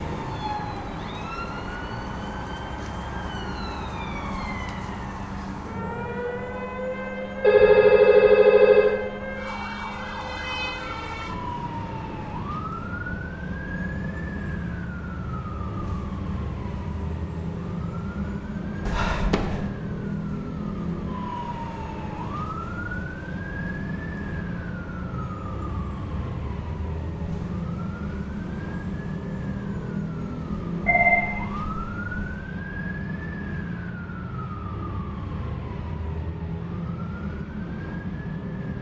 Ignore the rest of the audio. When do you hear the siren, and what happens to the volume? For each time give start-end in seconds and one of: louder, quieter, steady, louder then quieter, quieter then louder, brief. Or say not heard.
0.0-38.7 steady.